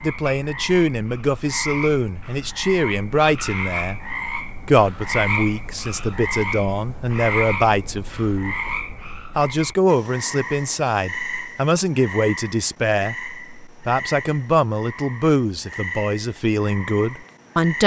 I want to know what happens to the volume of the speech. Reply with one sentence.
The volume of the speech stays about the same.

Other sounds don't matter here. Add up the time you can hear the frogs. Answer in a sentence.
The frogs can be heard for 18 seconds in total.